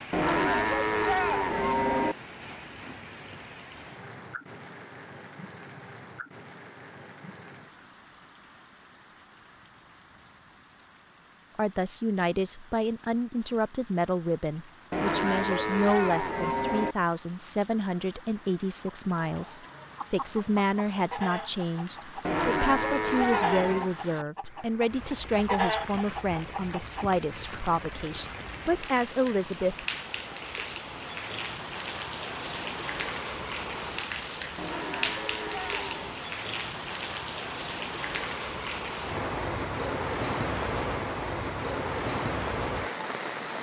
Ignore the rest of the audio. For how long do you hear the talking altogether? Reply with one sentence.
The talking can be heard for 18 seconds in total.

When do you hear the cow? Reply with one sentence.
You can hear the cow from 0.1 to 2.1 s, from 14.9 to 16.9 s, from 22.2 to 23.9 s and from 34.5 to 36.2 s.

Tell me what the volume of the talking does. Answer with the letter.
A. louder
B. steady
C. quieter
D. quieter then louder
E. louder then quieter
B.